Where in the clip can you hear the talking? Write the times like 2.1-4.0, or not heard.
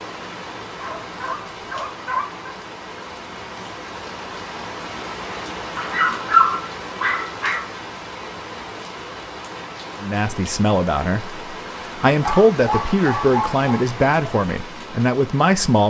10.0-15.8.